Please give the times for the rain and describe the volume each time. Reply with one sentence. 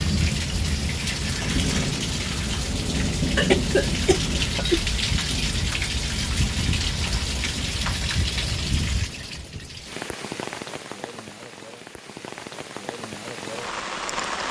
The rain can be heard from 0.0 to 14.4 s, getting quieter.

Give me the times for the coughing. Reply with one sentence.
The coughing can be heard from 3.4 to 5.0 s.